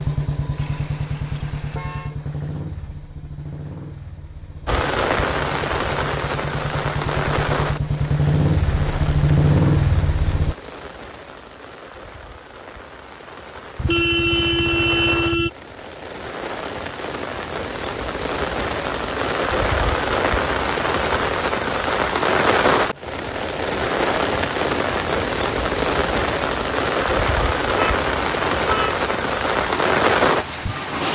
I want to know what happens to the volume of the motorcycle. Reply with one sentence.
The loudness of the motorcycle goes down, then up.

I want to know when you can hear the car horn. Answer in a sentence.
The car horn can be heard from 0.6 to 2.2 s, from 13.8 to 15.5 s and from 27.4 to 29.0 s.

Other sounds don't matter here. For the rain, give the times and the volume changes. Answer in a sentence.
The rain can be heard from 4.7 to 31.0 s, getting quieter then louder.